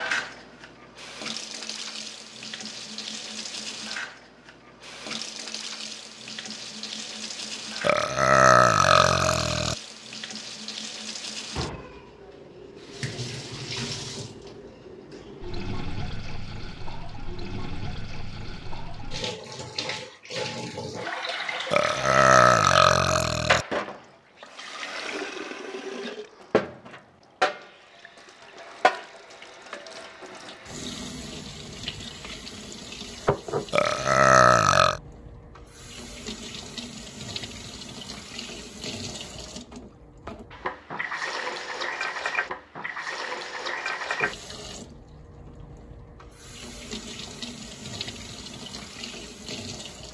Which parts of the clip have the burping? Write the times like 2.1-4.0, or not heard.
7.8-9.8, 21.7-23.6, 33.7-35.0.